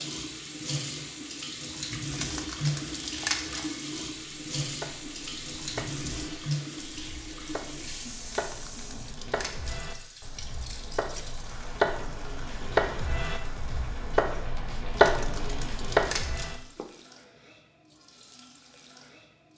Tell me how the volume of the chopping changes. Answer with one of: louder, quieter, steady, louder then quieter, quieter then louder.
louder.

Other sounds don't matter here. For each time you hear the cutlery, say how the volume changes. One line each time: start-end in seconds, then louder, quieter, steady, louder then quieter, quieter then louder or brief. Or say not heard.
not heard.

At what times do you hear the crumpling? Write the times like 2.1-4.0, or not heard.
2.1-3.6, 8.3-9.8, 14.9-16.5.